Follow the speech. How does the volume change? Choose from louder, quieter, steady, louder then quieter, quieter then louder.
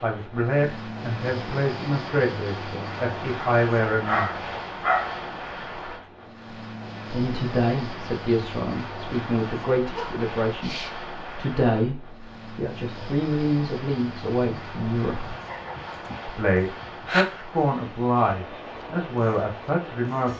steady.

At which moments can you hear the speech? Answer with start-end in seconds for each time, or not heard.
0.0-4.5, 7.1-15.3, 16.2-20.3.